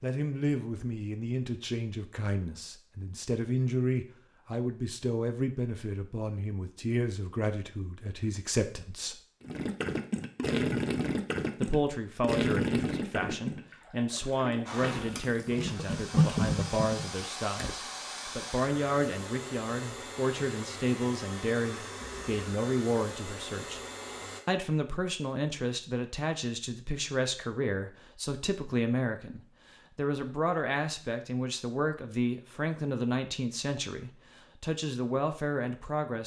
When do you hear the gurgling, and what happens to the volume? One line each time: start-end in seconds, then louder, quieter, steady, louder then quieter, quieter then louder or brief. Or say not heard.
9.4-17.8 quieter then louder.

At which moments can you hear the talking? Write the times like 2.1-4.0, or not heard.
0.0-9.2, 11.6-23.8, 24.4-36.2.